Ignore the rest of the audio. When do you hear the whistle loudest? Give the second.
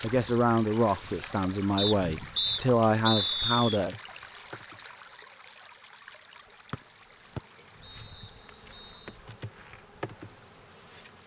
3 s.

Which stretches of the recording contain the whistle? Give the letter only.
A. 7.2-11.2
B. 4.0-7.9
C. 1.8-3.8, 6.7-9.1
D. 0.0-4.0
C.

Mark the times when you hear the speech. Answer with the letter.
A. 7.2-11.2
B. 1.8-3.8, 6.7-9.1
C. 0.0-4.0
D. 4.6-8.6
C.